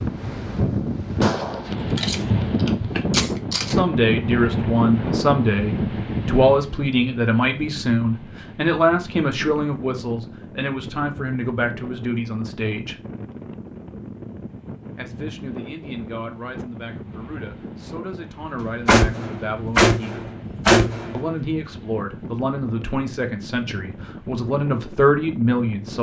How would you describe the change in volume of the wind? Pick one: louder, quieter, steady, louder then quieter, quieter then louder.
quieter.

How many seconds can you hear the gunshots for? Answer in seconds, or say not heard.
5 s.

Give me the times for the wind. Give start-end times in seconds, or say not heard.
0.0-25.9.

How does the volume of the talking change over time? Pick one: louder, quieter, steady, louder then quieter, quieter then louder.
quieter then louder.